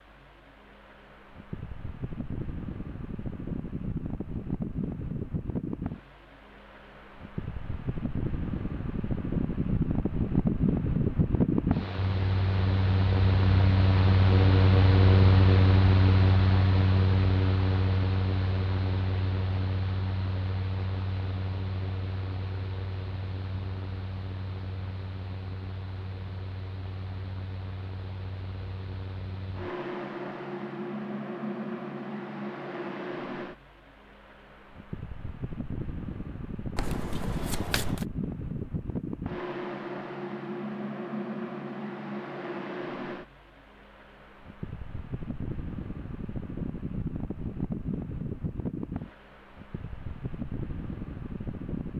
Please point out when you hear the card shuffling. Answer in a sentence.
The card shuffling can be heard from 36.8 to 38.0 s.